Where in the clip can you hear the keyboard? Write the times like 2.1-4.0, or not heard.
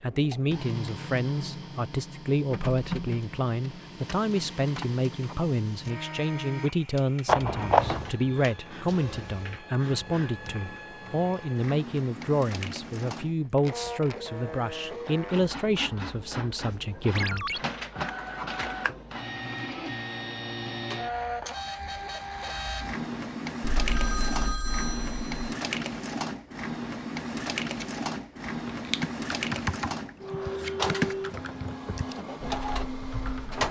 28.9-33.6.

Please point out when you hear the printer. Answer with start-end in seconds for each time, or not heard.
0.0-33.6.